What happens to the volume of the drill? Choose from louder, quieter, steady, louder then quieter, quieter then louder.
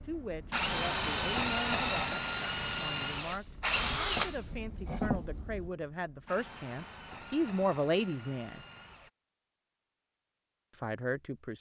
quieter.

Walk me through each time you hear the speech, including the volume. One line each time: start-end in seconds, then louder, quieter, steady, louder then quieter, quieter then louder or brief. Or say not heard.
0.1-8.6 louder
10.8-11.5 brief.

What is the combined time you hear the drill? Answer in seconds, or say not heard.
9 s.